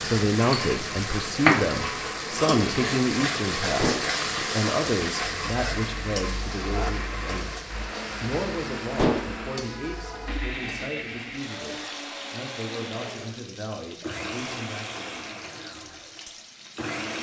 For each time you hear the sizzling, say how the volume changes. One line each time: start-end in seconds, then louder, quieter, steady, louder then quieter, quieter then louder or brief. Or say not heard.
0.0-17.0 quieter.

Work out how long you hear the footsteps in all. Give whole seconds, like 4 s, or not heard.
not heard.